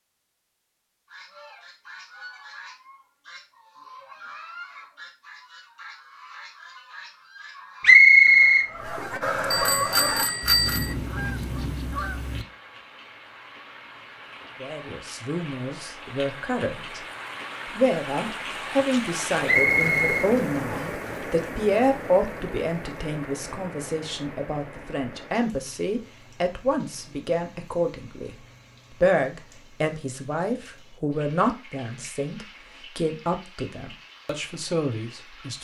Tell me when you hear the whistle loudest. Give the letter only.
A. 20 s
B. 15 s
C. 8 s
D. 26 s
C.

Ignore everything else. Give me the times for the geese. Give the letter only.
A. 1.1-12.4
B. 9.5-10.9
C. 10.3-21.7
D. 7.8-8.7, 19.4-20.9
A.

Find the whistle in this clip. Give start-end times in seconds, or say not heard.
7.8-8.7, 19.4-20.9.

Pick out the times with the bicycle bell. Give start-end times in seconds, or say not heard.
9.5-10.9.